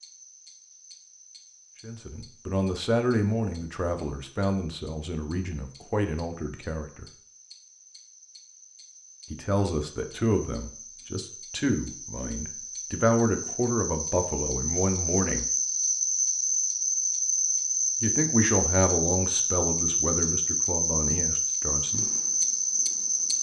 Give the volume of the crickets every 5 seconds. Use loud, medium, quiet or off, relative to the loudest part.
quiet, quiet, medium, loud, loud.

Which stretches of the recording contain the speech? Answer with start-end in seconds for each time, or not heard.
1.8-7.0, 9.3-15.4, 18.0-22.1.